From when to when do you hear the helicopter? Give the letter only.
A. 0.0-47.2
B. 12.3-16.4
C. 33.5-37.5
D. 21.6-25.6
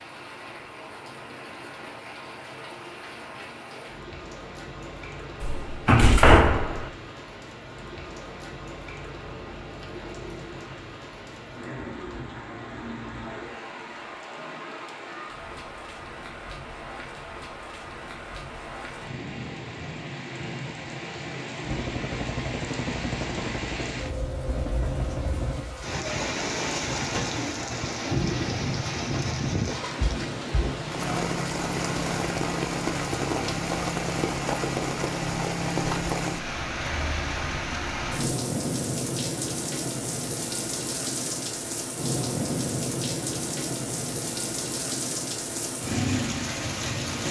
D.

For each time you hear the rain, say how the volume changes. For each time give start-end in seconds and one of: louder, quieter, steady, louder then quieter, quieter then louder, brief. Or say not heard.
0.0-47.2 louder.